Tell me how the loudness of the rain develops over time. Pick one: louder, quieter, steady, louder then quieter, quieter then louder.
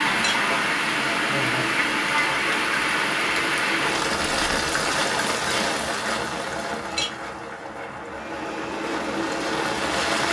quieter.